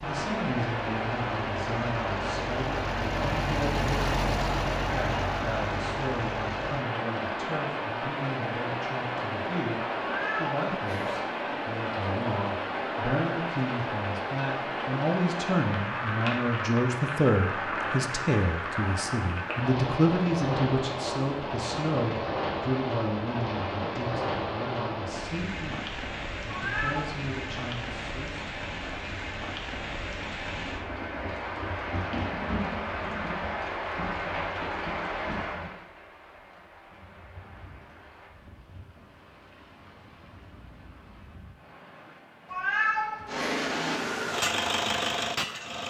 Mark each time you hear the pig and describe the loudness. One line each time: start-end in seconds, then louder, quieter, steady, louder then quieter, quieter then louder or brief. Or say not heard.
not heard.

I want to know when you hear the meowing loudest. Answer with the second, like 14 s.
43 s.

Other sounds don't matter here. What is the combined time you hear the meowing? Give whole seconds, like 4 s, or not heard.
3 s.